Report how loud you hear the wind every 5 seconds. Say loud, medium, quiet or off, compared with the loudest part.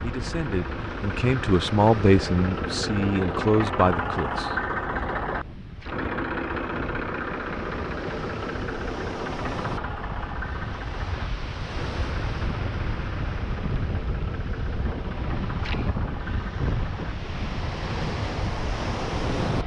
medium, medium, loud, loud.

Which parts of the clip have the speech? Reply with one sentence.
The speech can be heard from 0.0 to 4.5 s.